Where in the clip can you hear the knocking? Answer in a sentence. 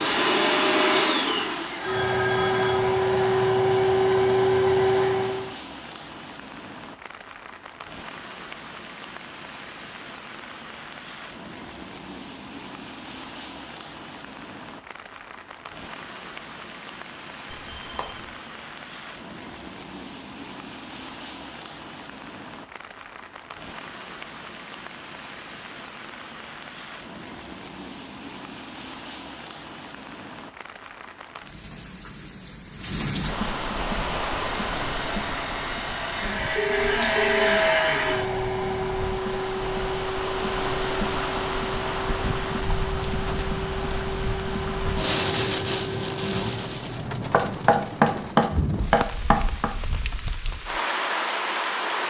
You can hear the knocking from 47.3 to 49.7 s.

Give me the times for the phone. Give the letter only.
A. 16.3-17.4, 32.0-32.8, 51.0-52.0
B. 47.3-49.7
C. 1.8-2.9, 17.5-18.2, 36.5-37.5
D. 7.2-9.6
C.